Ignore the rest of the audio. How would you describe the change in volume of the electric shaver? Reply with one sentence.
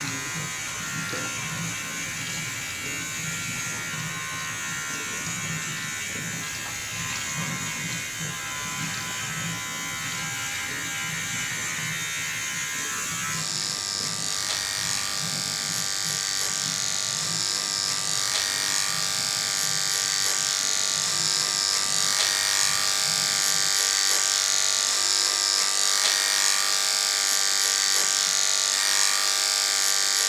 The loudness of the electric shaver goes up.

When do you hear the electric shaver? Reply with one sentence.
You can hear the electric shaver from 0.0 to 30.2 s.